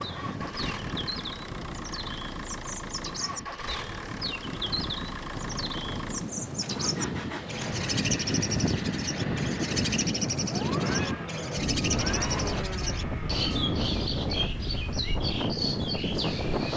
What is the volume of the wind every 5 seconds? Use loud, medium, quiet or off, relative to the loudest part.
medium, loud, loud, loud.